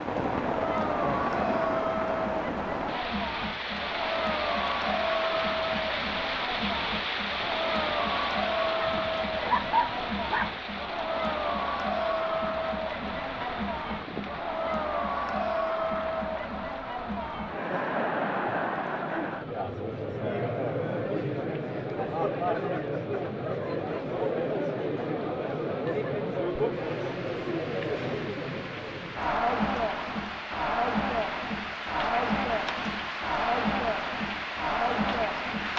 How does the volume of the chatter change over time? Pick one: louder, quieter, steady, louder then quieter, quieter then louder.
steady.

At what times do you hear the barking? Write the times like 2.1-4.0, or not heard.
8.7-10.6.